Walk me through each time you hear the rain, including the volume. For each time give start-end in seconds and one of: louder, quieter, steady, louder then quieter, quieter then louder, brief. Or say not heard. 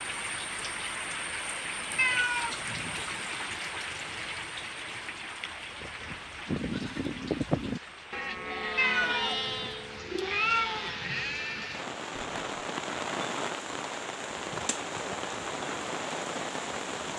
0.0-17.1 quieter then louder.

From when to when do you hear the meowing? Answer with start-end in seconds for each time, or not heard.
1.9-2.9, 8.8-11.2.